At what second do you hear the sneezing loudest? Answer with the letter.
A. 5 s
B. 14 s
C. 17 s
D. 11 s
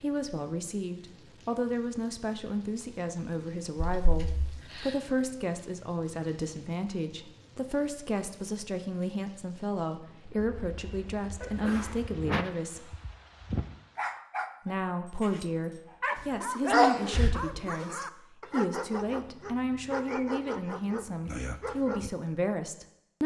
C.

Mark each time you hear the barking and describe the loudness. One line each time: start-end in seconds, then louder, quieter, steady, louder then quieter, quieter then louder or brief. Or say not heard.
12.1-22.1 steady.